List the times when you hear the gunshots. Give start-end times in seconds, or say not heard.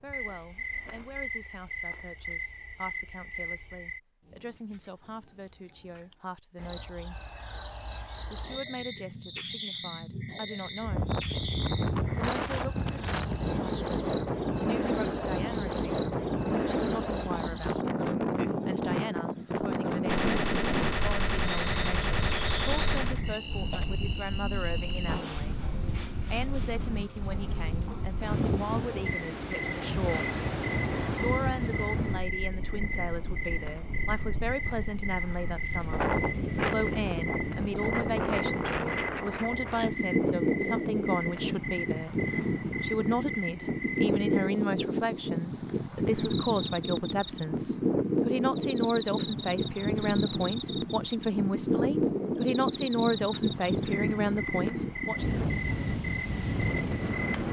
20.1-23.2, 35.2-37.2.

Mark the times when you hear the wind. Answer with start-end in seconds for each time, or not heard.
10.8-57.4.